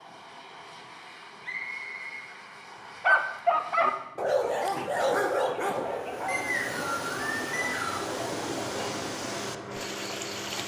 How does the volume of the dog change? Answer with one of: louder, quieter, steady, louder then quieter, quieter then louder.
quieter.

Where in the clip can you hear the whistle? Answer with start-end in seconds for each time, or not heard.
1.4-3.0, 6.2-8.1.